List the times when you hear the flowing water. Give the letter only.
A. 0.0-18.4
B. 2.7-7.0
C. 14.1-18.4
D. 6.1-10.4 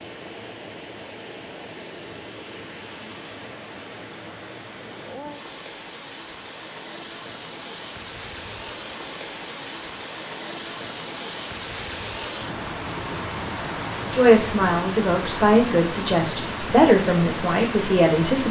A.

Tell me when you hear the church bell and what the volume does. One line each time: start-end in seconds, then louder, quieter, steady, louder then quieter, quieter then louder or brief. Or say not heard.
not heard.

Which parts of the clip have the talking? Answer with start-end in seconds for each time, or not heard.
14.1-18.4.